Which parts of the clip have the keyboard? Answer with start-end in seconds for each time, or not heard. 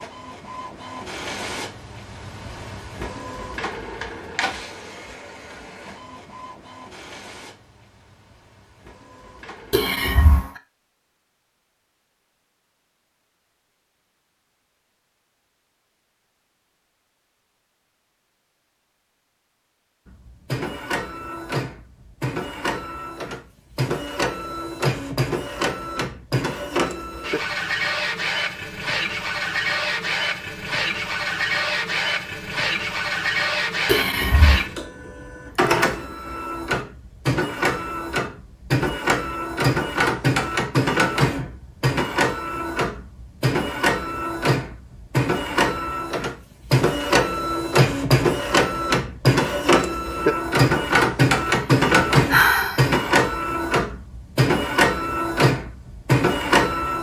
not heard.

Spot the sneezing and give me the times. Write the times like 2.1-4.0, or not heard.
not heard.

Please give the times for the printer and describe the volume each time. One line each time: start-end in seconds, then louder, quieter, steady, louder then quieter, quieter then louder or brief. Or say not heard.
0.0-9.9 quieter
20.1-56.9 louder.